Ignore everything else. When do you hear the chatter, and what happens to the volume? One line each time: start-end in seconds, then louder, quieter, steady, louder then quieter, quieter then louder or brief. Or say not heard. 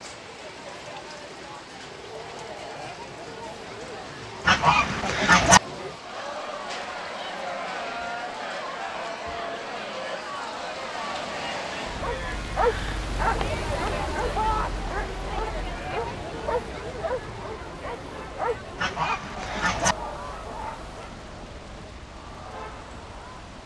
0.0-23.6 louder then quieter.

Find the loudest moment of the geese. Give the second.
5 s.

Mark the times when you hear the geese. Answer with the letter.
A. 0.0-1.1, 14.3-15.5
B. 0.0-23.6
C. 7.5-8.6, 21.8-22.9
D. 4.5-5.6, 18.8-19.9
D.